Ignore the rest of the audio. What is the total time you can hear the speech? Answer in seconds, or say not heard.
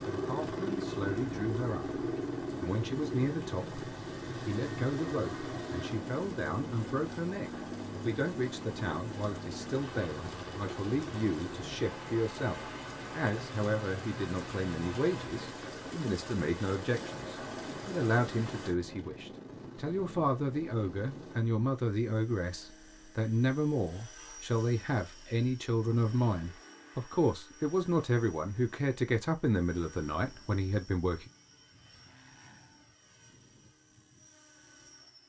31 s.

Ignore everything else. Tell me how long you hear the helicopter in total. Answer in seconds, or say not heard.
35 s.